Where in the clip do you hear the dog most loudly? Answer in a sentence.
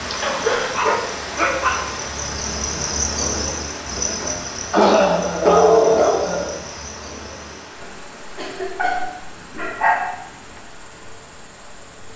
The loudest moment of the dog is at 6 seconds.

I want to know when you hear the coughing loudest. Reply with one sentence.
The volume of the coughing peaks at 5 seconds.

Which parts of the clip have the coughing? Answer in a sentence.
You can hear the coughing from 0.1 to 0.7 s, from 4.7 to 6.5 s and from 8.3 to 9.1 s.